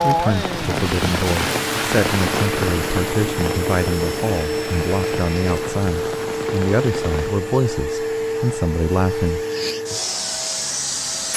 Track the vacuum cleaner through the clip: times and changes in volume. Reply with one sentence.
You can hear the vacuum cleaner from 1.5 to 11.3 s, at a steady volume.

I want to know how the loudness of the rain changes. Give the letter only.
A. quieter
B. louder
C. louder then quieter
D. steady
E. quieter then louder
A.